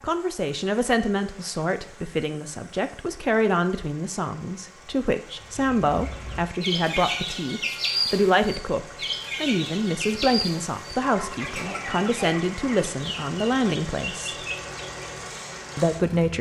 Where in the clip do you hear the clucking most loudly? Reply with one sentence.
The loudest moment of the clucking is at 8 seconds.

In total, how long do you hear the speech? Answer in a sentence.
The speech can be heard for 15 seconds in total.